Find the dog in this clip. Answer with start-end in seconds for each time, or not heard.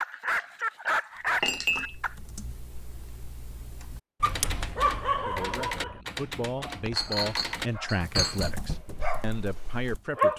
0.0-2.1, 4.2-10.3.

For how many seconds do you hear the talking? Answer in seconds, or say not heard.
5 s.